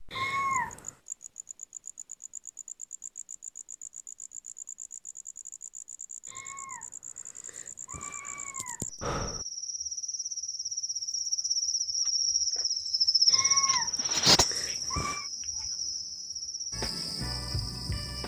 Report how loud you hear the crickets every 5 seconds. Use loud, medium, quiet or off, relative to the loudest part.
quiet, quiet, loud, medium.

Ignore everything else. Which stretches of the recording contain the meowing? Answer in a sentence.
You can hear the meowing from 0.1 to 0.9 s, from 6.3 to 6.8 s, from 7.5 to 8.8 s and from 13.2 to 15.3 s.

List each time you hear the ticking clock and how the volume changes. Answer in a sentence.
The ticking clock can't be heard in this clip.